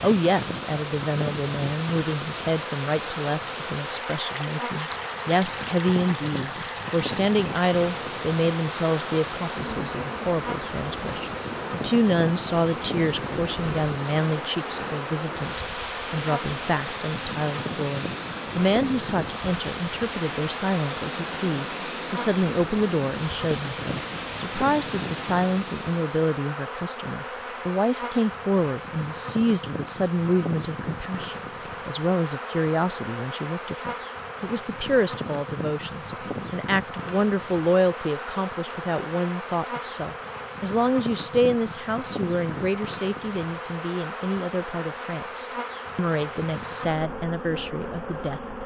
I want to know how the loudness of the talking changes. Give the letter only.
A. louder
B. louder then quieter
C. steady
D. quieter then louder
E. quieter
C.